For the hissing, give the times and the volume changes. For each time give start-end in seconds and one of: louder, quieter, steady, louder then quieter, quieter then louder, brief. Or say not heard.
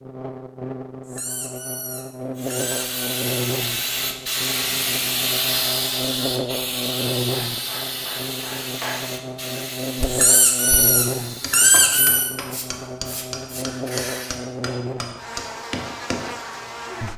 2.4-14.4 quieter.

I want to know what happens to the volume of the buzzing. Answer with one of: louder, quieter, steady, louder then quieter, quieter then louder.
steady.